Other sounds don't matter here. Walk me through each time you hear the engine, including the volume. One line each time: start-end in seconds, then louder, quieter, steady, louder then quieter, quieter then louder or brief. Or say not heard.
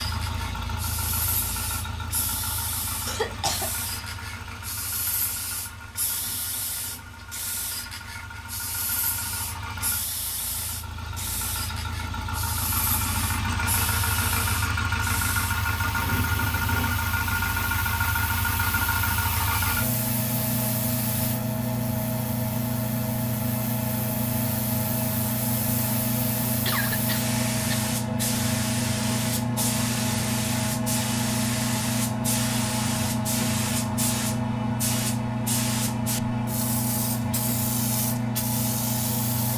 0.0-39.5 louder.